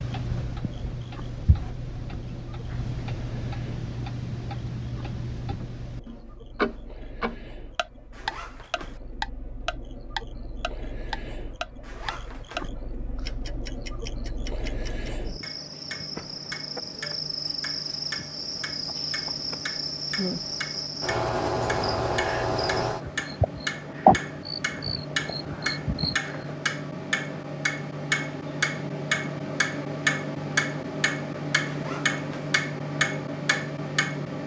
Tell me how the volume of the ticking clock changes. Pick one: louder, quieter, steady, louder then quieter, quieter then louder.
quieter then louder.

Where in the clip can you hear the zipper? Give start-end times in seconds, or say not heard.
8.1-9.0, 11.8-12.7, 31.6-32.5.